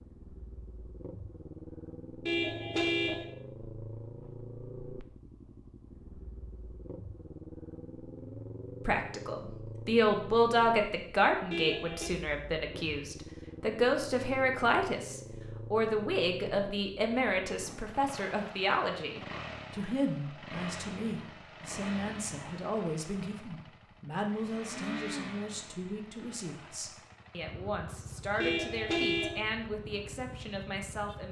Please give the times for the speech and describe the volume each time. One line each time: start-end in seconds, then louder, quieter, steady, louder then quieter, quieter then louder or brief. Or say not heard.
8.8-31.2 quieter.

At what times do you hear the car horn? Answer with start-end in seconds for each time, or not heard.
2.2-3.2, 11.5-12.1, 28.4-29.4.